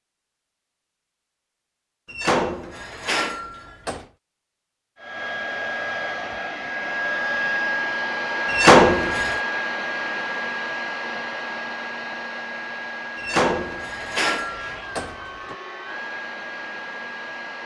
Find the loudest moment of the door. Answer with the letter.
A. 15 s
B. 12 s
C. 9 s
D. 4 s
C.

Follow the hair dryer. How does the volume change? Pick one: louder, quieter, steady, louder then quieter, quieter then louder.
quieter.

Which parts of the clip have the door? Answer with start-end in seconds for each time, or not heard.
2.0-4.0, 8.4-9.4, 13.2-15.6.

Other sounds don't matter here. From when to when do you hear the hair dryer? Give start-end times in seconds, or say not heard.
5.0-17.6.